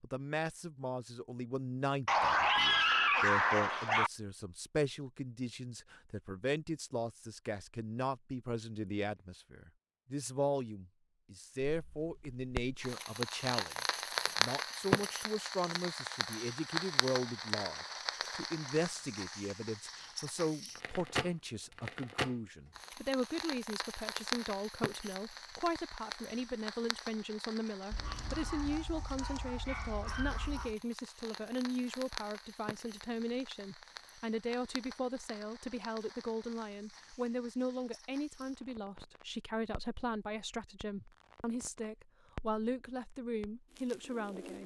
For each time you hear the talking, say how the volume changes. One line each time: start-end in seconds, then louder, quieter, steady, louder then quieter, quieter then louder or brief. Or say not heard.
0.0-44.6 steady.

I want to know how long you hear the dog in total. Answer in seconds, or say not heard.
5 s.